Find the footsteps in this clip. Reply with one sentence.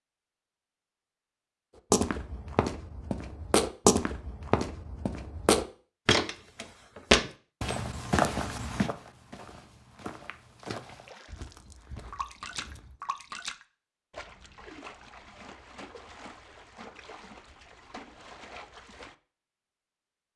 You can hear the footsteps from 1.9 to 13.0 s.